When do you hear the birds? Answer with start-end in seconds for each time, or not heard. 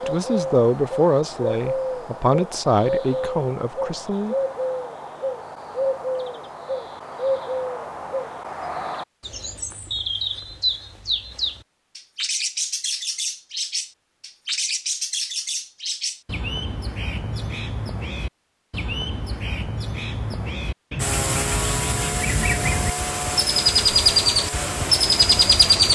0.0-25.9.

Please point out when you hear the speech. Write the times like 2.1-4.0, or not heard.
0.1-4.3.